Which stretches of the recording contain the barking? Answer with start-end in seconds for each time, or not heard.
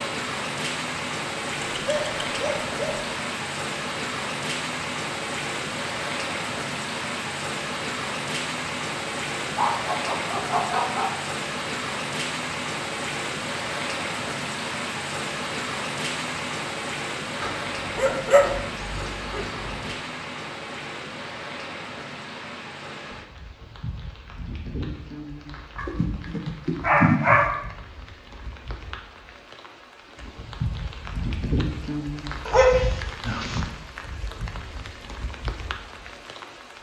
1.8-3.1, 9.4-11.2, 17.4-19.9, 25.8-27.5, 32.5-33.6.